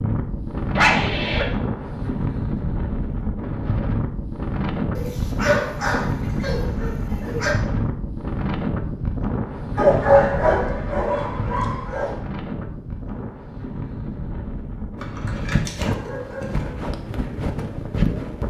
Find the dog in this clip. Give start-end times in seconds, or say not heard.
0.8-1.4, 5.0-7.5, 9.8-12.2, 14.9-16.8.